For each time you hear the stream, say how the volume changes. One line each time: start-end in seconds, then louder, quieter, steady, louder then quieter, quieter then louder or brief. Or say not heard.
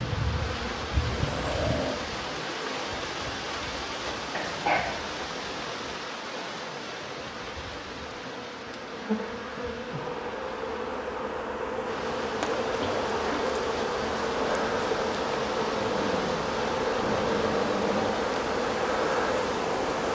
0.0-20.1 quieter then louder.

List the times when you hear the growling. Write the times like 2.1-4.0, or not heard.
1.1-1.9, 15.8-18.1.